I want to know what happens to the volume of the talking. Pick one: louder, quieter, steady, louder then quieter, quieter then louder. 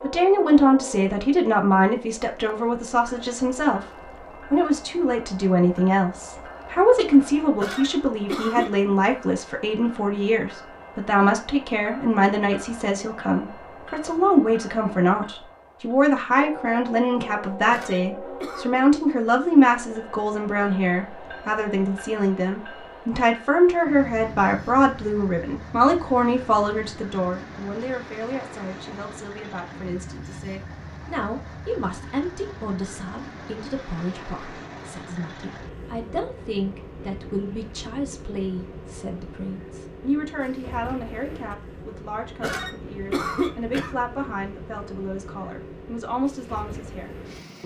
quieter.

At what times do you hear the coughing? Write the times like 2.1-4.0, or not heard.
7.6-8.7, 17.7-18.7, 42.4-44.0.